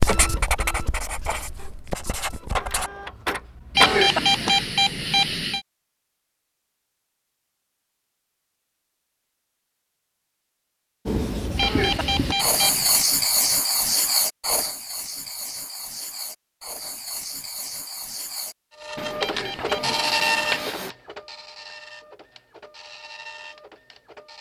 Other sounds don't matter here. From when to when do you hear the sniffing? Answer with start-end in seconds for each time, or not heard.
not heard.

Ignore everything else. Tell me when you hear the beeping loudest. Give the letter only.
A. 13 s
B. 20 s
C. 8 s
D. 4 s
D.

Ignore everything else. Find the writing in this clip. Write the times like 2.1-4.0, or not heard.
0.0-2.9, 11.1-20.9.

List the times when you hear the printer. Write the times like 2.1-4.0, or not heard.
0.0-4.7, 18.8-24.3.